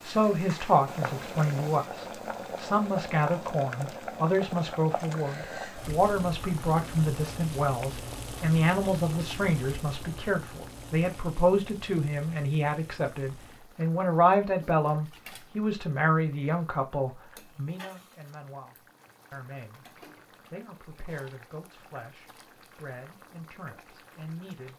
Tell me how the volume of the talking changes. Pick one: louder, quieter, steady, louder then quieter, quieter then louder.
quieter.